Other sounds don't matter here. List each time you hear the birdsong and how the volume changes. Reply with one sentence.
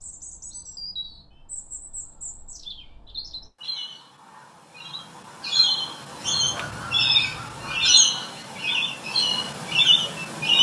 The birdsong can be heard from 0.0 to 10.5 s, getting louder.